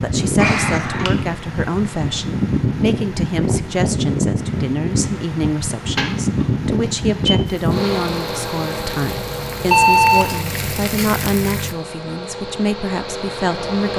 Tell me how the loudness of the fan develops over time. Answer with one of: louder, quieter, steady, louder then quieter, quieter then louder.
quieter.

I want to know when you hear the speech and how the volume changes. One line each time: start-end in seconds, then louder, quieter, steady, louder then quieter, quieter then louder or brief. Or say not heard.
0.0-13.9 steady.